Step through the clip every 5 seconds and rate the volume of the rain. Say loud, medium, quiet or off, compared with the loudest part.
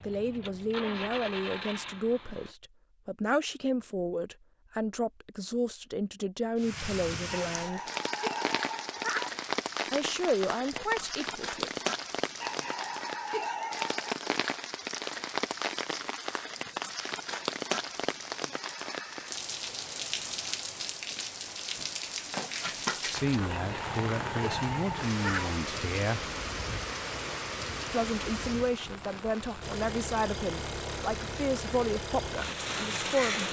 off, loud, loud, loud, loud, loud, loud.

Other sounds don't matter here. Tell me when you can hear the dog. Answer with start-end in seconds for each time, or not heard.
7.2-9.3, 12.4-14.2, 23.4-25.5.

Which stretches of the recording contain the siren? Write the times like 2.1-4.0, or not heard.
not heard.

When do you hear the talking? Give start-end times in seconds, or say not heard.
0.0-7.8, 9.8-11.7, 23.1-26.3, 27.9-33.4.